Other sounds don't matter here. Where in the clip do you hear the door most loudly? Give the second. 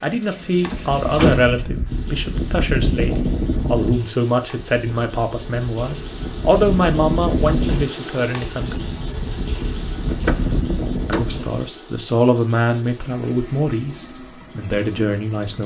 1 s.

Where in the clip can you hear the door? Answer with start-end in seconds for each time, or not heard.
0.7-1.6, 10.1-11.5.